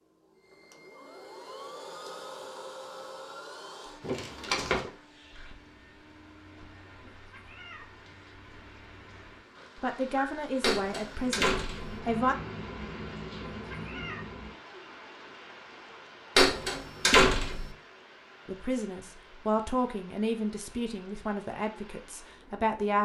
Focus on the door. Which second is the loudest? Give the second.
17 s.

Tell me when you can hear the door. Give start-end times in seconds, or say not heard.
4.0-4.9, 10.6-11.9, 16.4-17.6.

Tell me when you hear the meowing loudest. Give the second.
14 s.